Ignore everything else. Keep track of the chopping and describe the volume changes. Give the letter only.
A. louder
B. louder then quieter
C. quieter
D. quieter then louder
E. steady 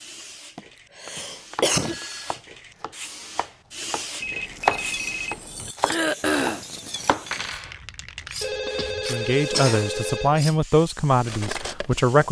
B.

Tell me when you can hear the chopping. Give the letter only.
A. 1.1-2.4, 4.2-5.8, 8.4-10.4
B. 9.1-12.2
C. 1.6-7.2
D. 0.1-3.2
C.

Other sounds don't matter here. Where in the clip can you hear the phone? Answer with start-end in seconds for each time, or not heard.
1.1-2.4, 4.2-5.8, 8.4-10.4.